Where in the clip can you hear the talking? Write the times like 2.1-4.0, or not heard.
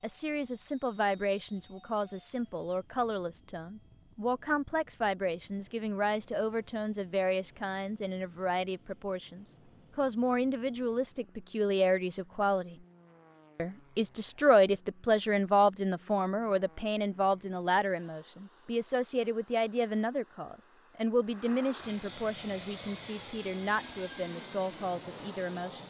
0.0-12.8, 13.6-25.8.